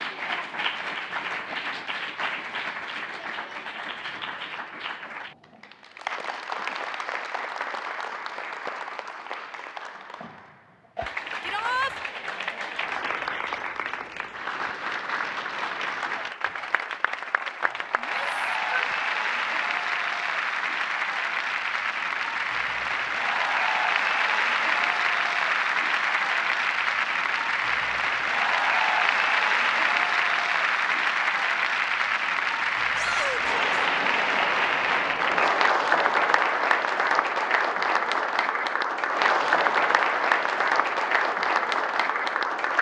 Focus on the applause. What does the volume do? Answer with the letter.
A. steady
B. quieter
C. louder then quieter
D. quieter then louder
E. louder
E.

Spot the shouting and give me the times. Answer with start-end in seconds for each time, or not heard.
11.4-11.9, 17.9-18.9, 32.9-33.8.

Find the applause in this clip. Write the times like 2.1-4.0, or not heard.
0.0-42.7.